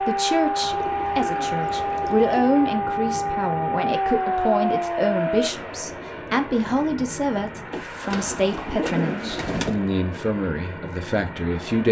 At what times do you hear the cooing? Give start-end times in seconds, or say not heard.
0.6-2.5, 7.7-9.8.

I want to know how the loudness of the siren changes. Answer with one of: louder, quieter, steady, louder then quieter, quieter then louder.
steady.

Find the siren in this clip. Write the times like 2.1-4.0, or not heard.
0.0-5.5.